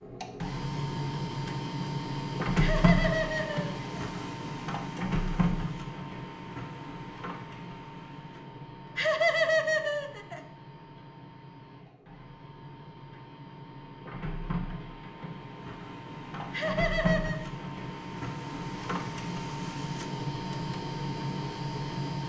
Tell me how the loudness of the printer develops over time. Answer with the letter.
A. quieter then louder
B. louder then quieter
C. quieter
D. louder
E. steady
A.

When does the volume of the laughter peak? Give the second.
9 s.